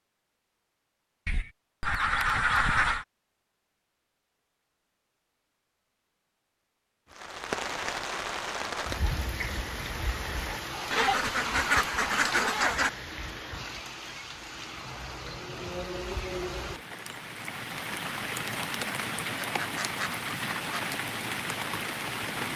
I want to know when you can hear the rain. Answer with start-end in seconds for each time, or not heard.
7.1-22.5.